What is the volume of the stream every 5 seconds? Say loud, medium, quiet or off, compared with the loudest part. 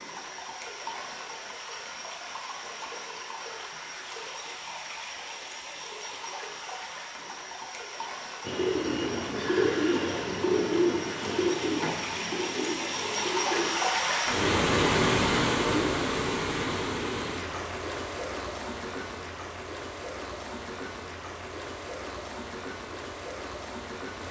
medium, medium, loud, loud, medium.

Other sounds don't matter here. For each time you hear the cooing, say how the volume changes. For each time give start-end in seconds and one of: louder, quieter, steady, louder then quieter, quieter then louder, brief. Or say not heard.
8.4-13.8 quieter.